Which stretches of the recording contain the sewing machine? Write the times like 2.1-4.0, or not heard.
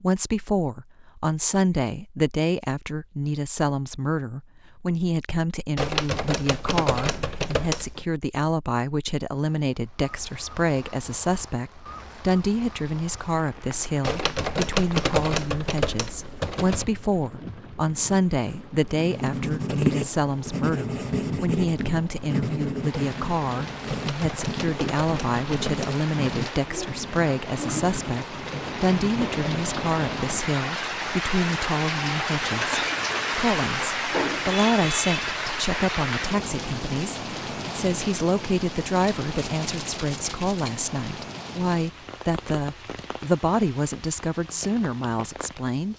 not heard.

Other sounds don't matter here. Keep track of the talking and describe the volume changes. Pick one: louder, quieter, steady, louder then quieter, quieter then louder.
steady.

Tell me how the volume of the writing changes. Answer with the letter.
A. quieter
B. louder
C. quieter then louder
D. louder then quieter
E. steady
A.